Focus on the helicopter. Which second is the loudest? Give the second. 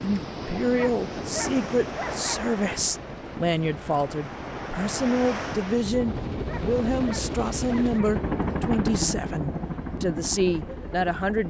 9 s.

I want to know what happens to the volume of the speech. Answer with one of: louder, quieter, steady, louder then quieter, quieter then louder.
steady.